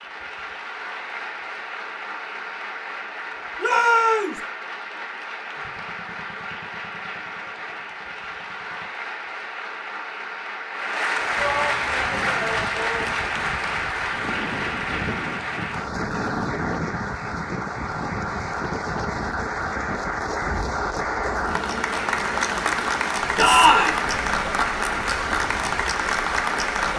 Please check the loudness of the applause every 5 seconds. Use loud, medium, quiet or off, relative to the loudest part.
medium, medium, loud, medium, loud, loud.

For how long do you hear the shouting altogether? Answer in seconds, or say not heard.
3 s.